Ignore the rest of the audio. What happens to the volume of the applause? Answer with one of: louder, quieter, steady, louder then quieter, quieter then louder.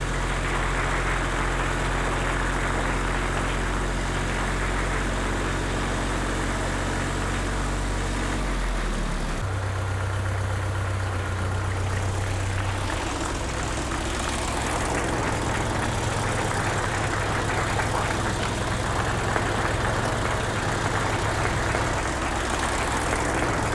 quieter then louder.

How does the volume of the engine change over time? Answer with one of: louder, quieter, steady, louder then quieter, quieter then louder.
steady.